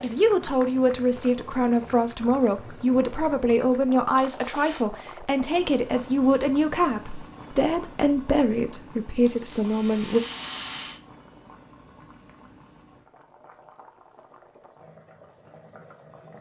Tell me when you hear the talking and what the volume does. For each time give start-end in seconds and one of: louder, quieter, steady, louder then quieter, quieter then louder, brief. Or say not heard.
0.0-10.2 steady.